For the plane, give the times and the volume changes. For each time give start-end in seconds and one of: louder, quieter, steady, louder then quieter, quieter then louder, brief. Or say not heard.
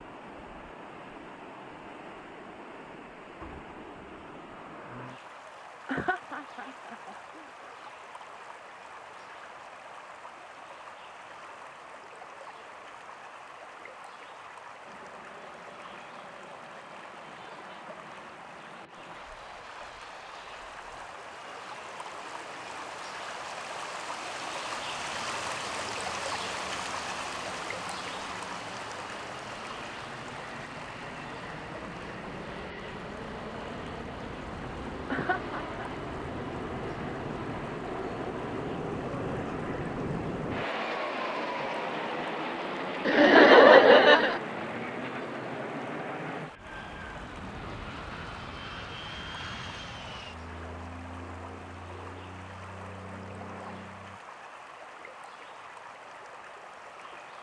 14.8-54.2 louder then quieter.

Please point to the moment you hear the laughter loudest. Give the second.
44 s.